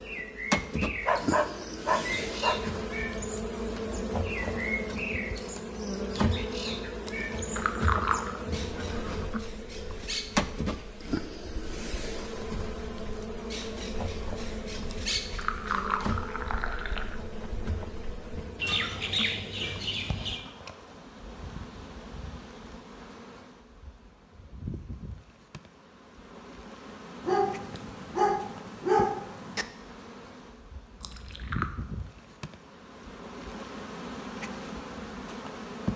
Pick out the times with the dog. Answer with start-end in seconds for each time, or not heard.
1.1-2.6, 27.2-29.6.